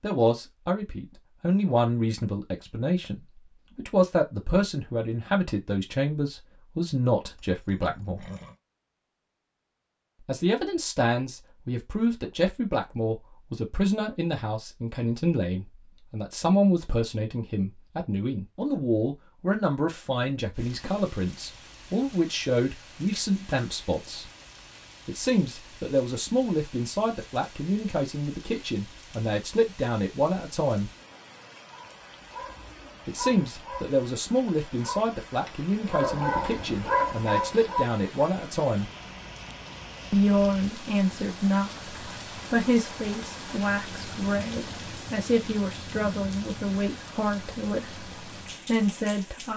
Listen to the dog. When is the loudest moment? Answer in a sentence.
The loudest moment of the dog is at 37 seconds.